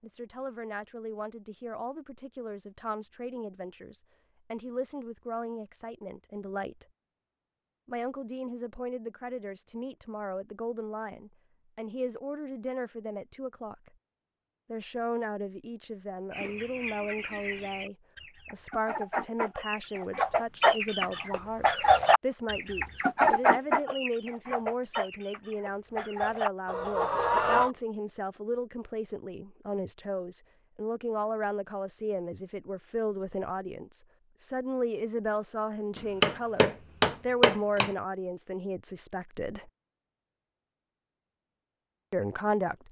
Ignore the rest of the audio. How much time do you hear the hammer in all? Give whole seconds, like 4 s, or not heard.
2 s.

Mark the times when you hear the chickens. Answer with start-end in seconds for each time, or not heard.
16.3-27.7.